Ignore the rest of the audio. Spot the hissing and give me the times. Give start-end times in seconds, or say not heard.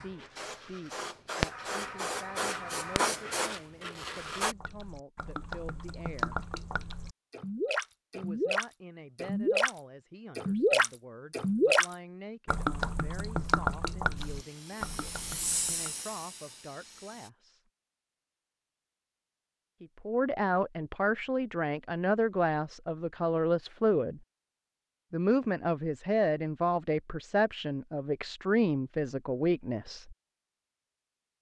0.0-4.5, 14.2-17.3.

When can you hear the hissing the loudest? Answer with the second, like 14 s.
3 s.